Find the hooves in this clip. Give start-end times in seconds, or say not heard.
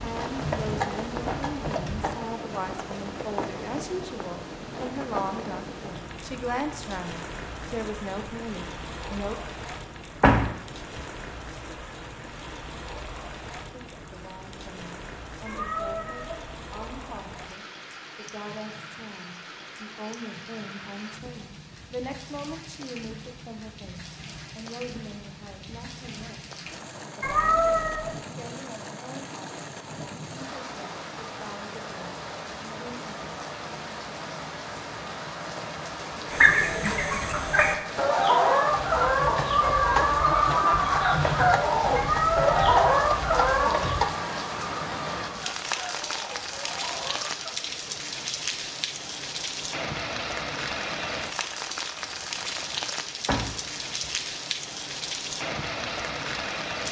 0.0-2.2, 38.8-44.0.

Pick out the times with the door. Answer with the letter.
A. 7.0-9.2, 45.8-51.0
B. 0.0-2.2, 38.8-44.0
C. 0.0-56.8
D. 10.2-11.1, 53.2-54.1
D.